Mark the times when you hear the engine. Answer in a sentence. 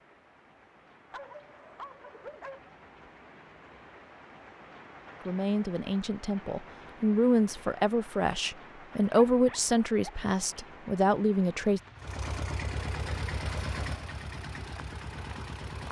The engine can be heard from 11.9 to 15.8 s.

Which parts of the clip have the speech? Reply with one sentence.
You can hear the speech from 5.2 to 11.8 s.